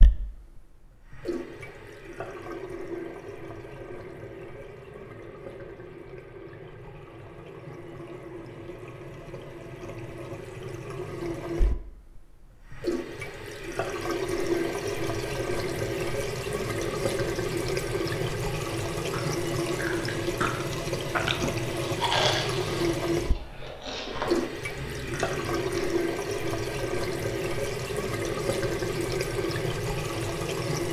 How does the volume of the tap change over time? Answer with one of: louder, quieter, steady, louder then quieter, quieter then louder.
louder.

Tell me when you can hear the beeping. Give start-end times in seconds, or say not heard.
not heard.